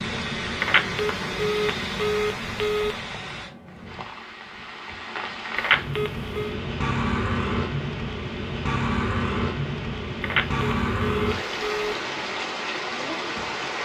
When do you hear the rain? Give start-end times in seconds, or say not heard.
0.0-13.8.